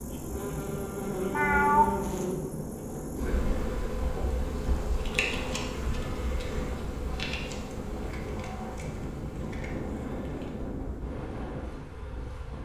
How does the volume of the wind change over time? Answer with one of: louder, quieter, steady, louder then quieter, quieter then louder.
steady.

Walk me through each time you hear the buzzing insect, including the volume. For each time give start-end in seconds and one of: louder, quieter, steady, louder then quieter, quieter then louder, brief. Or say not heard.
0.0-12.6 quieter.